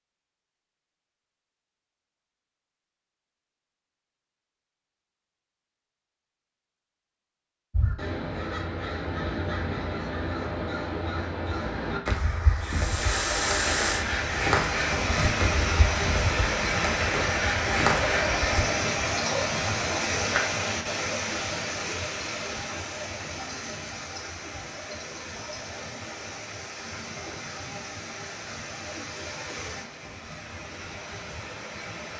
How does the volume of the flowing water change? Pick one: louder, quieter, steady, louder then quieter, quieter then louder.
quieter.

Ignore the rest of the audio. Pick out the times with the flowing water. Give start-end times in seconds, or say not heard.
12.6-32.1.